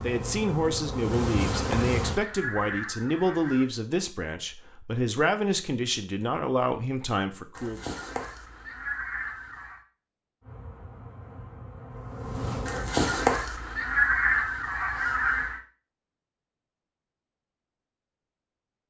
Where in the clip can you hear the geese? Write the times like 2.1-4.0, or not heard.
1.2-3.6, 7.5-9.8, 12.7-15.6.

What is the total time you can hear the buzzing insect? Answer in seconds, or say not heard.
5 s.